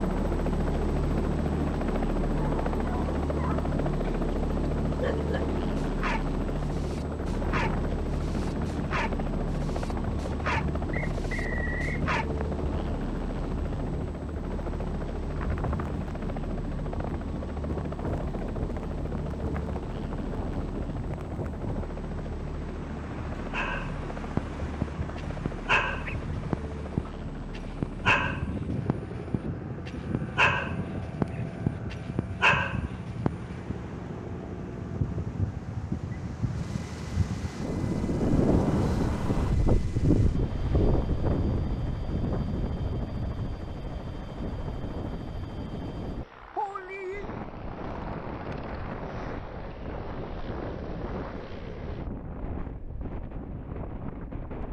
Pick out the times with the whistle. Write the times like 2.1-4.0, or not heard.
10.9-12.1.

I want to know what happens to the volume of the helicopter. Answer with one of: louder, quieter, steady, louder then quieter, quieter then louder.
quieter.